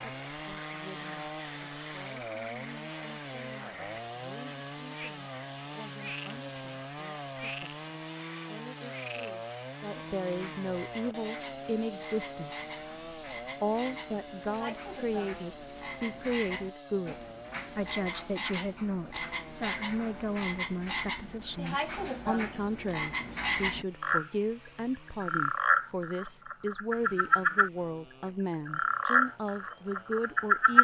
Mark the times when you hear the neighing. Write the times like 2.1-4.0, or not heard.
not heard.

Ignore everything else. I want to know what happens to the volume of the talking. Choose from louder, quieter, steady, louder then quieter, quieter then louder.
louder.